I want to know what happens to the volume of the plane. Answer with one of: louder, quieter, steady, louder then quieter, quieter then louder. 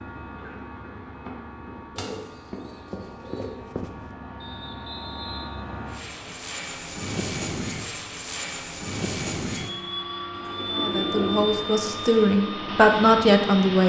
louder.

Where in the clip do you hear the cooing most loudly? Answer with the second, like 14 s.
11 s.